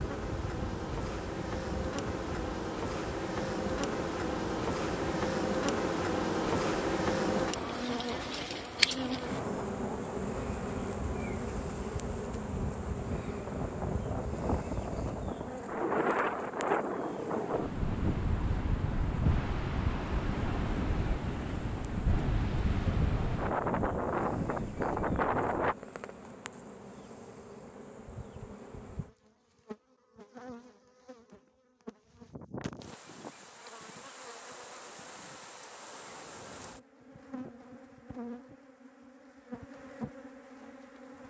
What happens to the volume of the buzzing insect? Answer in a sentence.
The volume of the buzzing insect goes down.